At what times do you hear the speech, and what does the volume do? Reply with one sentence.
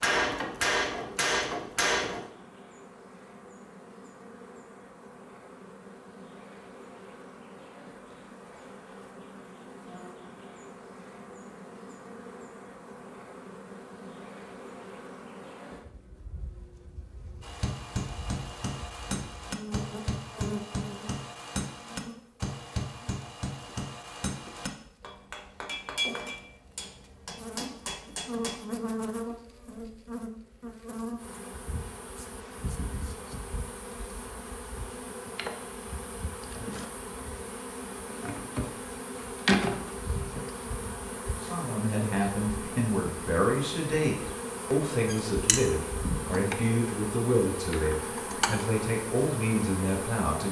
You can hear the speech from 41.4 to 50.4 s, at a steady volume.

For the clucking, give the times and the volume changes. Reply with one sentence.
The clucking can't be heard in this clip.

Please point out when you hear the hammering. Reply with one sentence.
The hammering can be heard from 0.0 to 2.2 s and from 17.4 to 28.6 s.